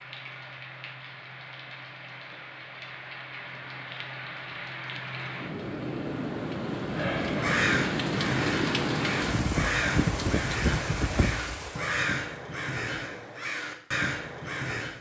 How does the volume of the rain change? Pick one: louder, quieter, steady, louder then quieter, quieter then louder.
louder.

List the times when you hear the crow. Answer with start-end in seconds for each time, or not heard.
7.3-14.9.